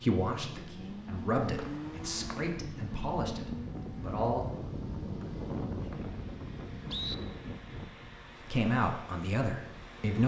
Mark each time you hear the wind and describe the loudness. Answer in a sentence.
You can hear the wind from 0.0 to 10.2 s, getting louder then quieter.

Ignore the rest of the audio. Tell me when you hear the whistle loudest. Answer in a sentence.
The loudest moment of the whistle is at 7 seconds.